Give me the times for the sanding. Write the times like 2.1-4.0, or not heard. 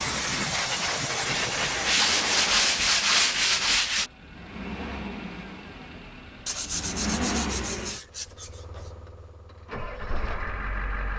1.3-4.1, 6.5-8.9.